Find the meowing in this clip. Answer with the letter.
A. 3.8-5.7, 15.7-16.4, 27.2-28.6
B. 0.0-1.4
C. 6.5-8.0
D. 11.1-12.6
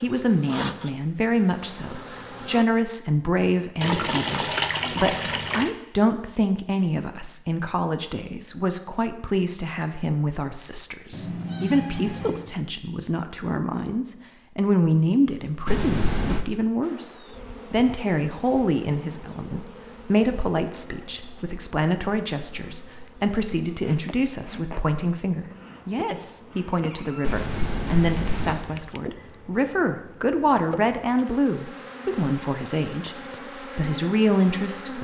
D.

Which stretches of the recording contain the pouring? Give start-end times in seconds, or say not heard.
3.8-5.7, 15.7-16.4, 27.2-28.6.